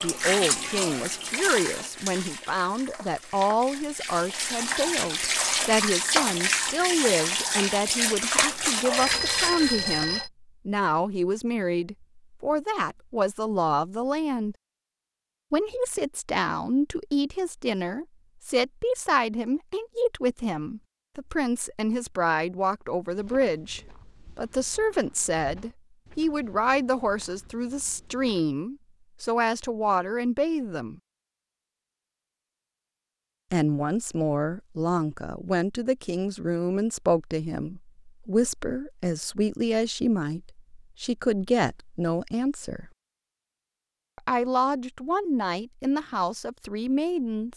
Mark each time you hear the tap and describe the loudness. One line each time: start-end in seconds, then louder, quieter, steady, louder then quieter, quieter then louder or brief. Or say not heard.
0.0-10.1 quieter then louder.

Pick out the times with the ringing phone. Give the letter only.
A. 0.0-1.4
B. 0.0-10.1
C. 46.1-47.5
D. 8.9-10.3
D.